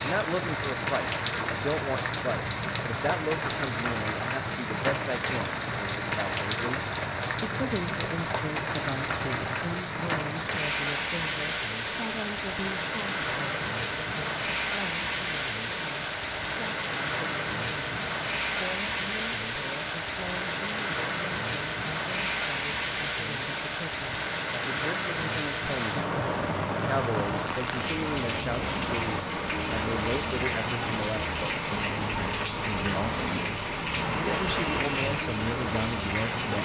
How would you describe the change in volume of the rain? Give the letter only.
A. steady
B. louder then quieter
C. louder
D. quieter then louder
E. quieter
A.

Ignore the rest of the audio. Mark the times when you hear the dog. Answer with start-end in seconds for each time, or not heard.
not heard.